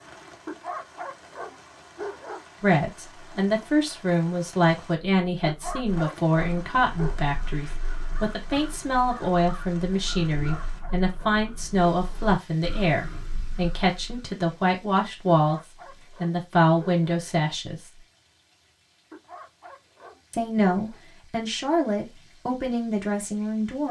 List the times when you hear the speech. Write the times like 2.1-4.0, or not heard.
2.6-15.6, 16.2-17.9, 20.3-23.8.